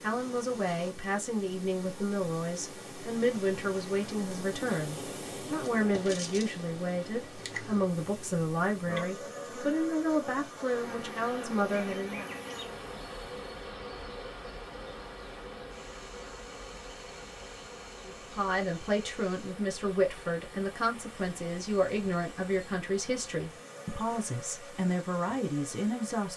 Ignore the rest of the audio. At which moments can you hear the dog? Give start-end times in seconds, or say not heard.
not heard.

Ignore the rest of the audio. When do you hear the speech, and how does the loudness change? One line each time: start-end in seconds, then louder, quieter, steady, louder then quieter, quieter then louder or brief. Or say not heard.
0.0-12.3 steady
18.1-26.3 steady.